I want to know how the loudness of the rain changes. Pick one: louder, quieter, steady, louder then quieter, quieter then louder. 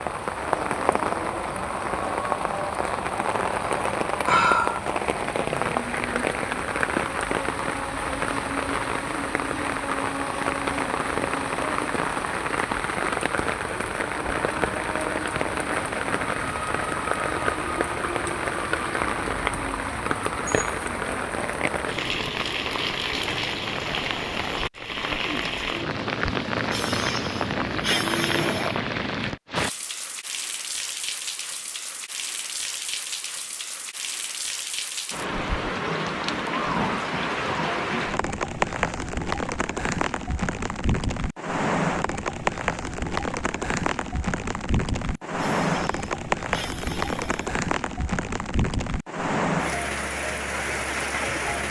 steady.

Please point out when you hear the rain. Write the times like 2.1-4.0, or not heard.
0.0-51.6.